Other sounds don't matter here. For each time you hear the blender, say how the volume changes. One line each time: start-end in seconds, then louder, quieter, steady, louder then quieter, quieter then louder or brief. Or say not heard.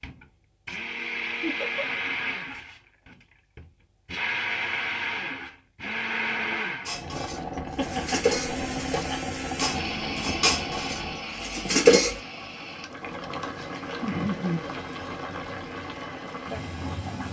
0.0-17.2 quieter.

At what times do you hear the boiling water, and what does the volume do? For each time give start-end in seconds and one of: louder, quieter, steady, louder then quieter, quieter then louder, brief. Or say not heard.
6.8-17.2 steady.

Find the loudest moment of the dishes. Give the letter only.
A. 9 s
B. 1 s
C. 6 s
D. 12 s
D.